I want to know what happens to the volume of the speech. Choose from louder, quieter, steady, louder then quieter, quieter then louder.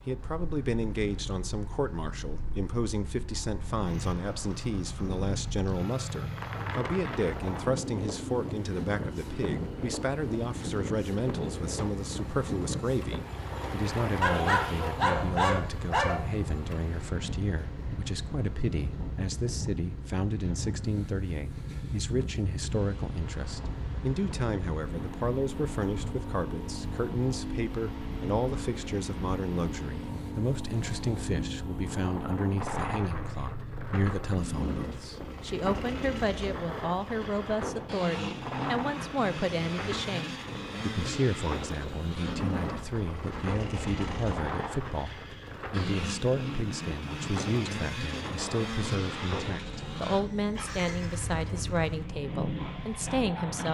steady.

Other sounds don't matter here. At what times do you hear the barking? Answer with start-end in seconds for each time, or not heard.
14.2-16.2.